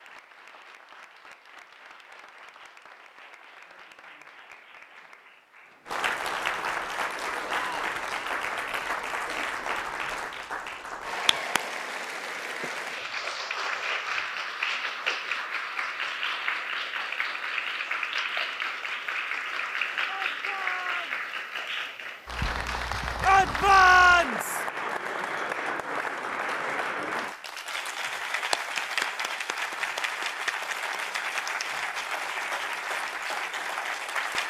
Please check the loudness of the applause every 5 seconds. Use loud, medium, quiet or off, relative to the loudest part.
quiet, loud, loud, loud, loud, loud, loud.